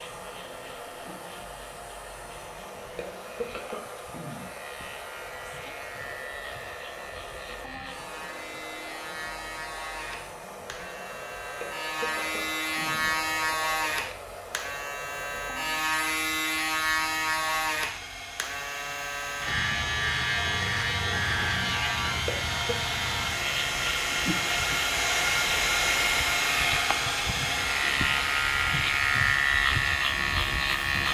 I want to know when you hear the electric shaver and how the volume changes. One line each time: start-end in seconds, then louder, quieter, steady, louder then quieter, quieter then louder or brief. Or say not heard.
0.0-31.1 louder.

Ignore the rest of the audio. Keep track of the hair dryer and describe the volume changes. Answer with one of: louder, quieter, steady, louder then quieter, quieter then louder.
louder.